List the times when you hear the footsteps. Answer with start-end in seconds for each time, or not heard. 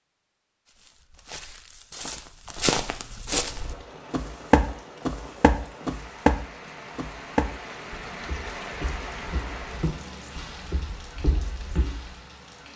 0.7-12.1.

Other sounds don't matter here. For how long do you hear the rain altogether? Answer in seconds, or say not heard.
9 s.